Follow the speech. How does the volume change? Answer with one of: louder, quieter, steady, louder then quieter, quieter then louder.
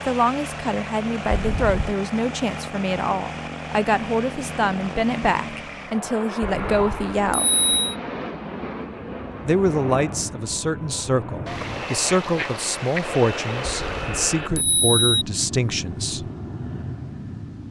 steady.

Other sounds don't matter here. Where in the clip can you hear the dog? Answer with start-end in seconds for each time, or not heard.
not heard.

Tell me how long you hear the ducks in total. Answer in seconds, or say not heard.
3 s.